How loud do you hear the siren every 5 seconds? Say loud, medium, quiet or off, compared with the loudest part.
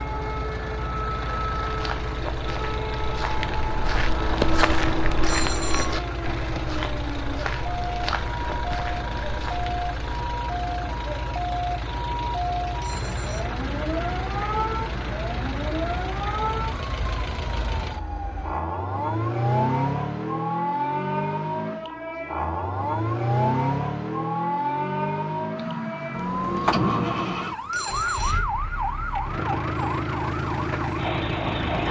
medium, medium, loud, loud, loud, loud, loud.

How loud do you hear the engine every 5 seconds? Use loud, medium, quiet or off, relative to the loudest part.
medium, medium, medium, loud, loud, loud, loud.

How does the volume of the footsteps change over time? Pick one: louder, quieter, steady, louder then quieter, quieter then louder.
louder then quieter.